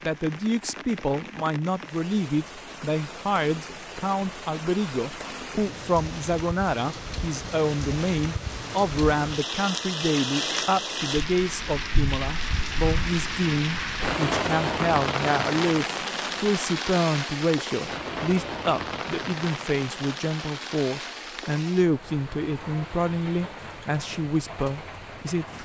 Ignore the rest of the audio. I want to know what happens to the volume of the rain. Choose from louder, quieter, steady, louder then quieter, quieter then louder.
louder then quieter.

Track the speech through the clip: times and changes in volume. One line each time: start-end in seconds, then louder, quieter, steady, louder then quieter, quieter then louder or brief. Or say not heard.
0.1-25.5 steady.